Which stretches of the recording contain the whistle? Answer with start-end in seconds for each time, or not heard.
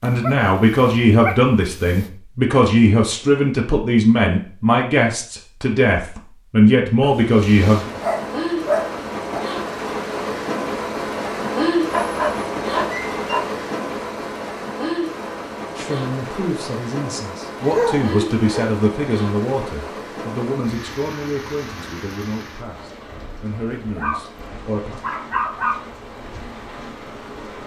not heard.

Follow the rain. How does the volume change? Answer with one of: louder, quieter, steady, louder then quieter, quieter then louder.
quieter.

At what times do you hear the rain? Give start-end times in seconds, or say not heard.
7.2-27.6.